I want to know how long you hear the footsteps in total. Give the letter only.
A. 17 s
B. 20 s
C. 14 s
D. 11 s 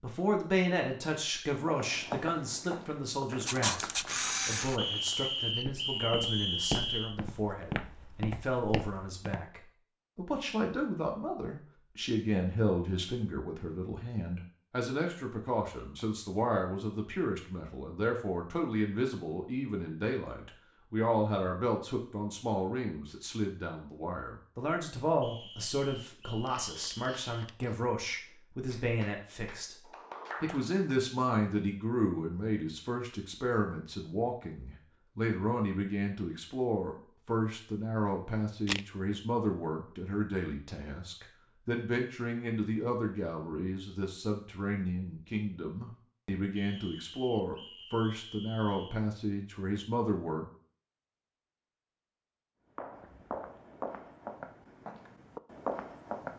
D.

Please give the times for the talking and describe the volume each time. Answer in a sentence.
The talking can be heard from 0.0 to 50.5 s, at a steady volume.